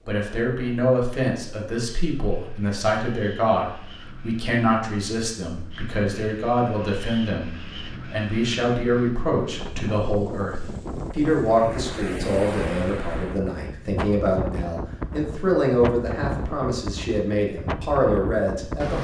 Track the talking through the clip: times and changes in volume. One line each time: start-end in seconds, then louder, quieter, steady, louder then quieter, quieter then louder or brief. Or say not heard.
0.1-19.0 steady.